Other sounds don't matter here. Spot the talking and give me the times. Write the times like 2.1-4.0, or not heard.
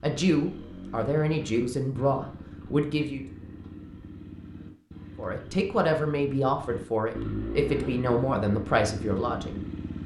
0.0-3.2, 5.2-9.7.